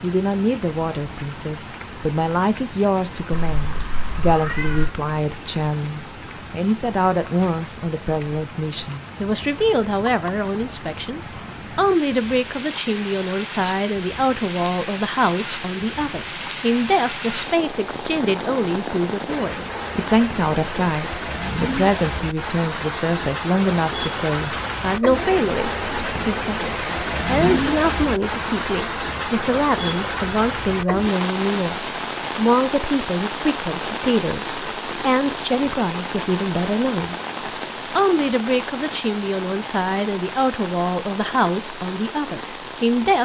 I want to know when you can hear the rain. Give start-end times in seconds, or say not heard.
0.0-43.2.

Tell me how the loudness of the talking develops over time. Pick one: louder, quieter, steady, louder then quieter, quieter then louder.
steady.